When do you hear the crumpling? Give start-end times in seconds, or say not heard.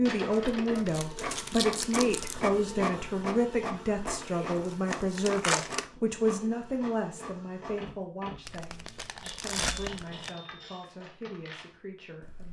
0.8-2.4, 4.9-5.8, 8.4-10.3.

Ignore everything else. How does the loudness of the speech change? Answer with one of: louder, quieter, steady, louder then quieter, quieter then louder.
quieter.